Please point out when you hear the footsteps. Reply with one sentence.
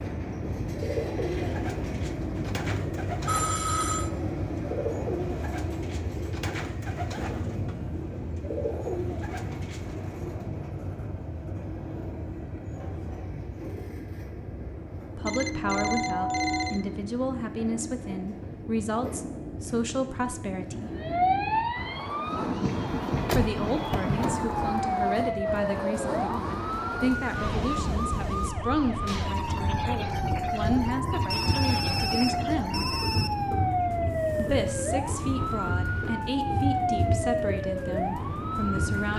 You can't hear the footsteps here.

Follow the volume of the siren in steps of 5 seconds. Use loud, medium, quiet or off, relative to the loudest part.
off, off, off, off, loud, loud, loud, loud.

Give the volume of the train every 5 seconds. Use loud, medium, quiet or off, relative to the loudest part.
loud, loud, medium, medium, loud, loud, loud, loud.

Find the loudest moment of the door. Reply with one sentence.
The volume of the door peaks at 23 seconds.